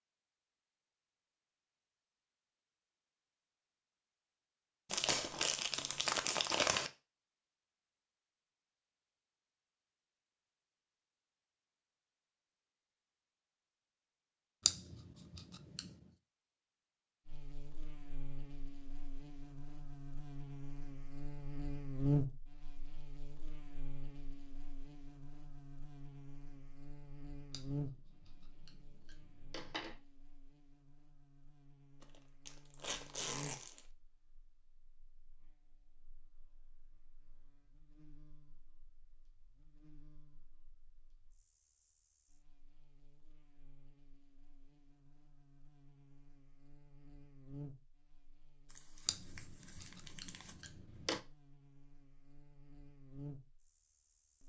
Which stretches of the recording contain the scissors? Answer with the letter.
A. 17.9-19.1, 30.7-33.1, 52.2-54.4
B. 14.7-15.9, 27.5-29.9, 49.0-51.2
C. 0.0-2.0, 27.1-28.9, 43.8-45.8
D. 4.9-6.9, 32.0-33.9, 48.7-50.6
B.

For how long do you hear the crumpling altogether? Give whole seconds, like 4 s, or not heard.
6 s.